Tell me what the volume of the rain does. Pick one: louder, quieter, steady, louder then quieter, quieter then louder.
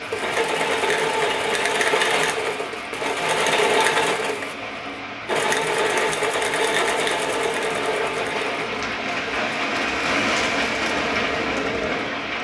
louder.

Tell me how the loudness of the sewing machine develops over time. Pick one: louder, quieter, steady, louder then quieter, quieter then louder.
quieter.